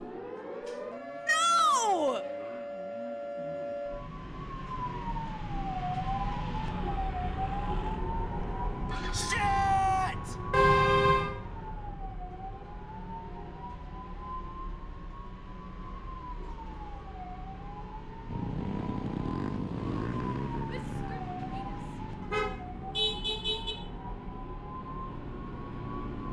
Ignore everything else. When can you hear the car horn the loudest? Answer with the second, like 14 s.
11 s.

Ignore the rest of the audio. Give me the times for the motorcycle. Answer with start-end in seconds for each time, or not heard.
0.0-11.8, 18.2-26.2.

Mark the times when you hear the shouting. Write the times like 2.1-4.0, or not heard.
1.2-2.2, 9.1-10.3, 20.7-21.8.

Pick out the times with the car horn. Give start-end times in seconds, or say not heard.
10.5-11.3, 22.2-23.8.